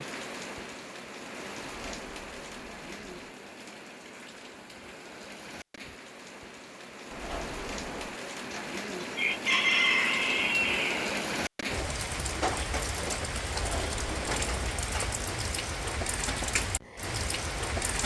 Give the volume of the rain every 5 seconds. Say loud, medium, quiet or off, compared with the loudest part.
medium, medium, loud, loud.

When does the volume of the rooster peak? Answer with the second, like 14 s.
10 s.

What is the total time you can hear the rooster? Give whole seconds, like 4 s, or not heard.
3 s.